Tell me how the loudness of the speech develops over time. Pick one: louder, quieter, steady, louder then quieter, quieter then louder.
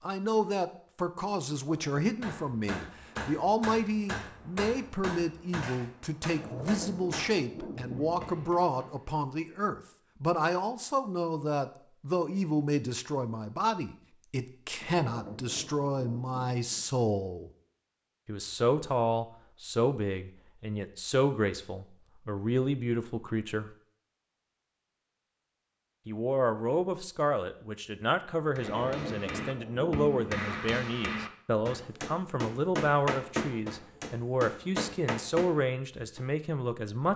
steady.